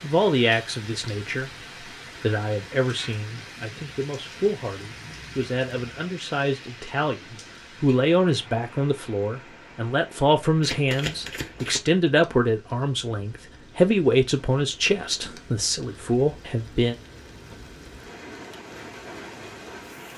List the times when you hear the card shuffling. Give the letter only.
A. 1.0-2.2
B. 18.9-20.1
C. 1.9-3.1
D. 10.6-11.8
D.